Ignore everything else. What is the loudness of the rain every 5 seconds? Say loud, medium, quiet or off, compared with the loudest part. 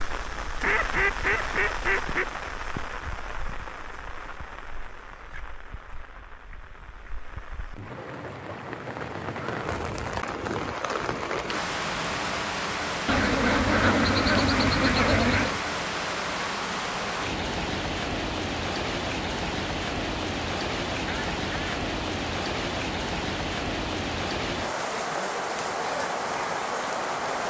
medium, medium, loud, loud, loud, loud.